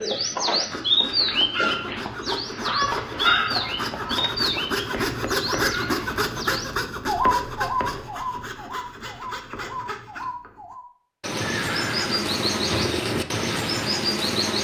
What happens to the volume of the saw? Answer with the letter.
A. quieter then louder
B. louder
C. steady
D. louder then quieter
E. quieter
D.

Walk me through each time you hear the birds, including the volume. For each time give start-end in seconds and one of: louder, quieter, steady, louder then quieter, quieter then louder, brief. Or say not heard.
0.0-14.5 quieter then louder.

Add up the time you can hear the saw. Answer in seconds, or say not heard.
10 s.